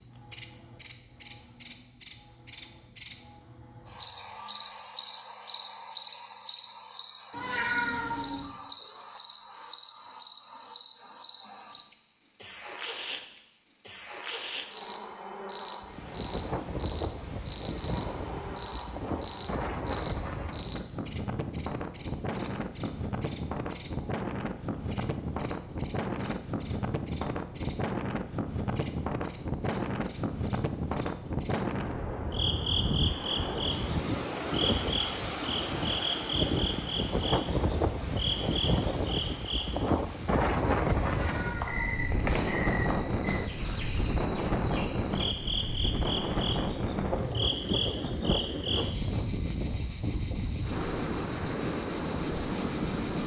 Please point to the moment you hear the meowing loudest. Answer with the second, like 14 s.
8 s.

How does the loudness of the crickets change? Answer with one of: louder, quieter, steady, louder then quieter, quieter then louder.
quieter.